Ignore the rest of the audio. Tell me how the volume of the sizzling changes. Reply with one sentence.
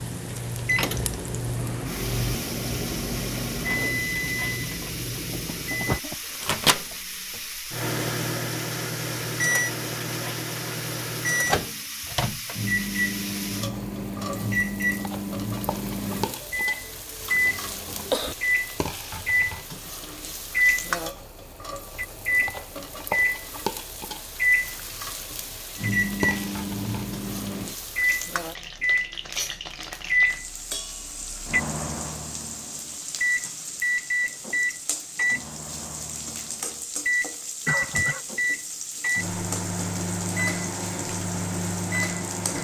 The loudness of the sizzling stays about the same.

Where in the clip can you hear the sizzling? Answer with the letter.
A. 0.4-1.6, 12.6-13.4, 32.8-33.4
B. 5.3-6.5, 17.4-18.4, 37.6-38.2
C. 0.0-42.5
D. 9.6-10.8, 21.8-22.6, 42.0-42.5
C.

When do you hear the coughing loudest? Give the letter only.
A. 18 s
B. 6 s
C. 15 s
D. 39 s
A.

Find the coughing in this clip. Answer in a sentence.
You can hear the coughing from 5.3 to 6.5 s, from 17.4 to 18.4 s and from 37.6 to 38.2 s.